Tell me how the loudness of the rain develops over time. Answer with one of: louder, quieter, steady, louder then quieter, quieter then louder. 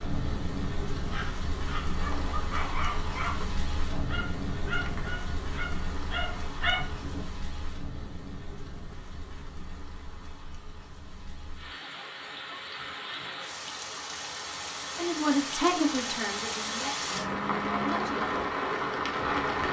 quieter then louder.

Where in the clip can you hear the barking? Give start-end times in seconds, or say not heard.
0.9-7.2.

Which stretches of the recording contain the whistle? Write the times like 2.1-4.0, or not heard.
not heard.